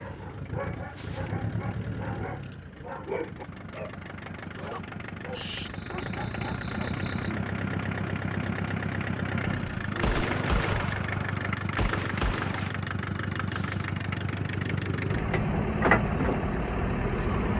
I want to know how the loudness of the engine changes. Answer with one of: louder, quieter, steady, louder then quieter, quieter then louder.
louder.